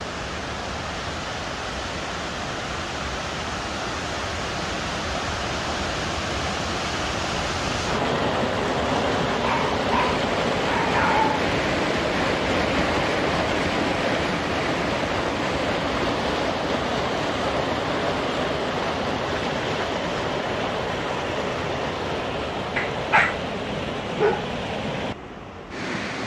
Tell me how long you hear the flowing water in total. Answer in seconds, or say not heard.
26 s.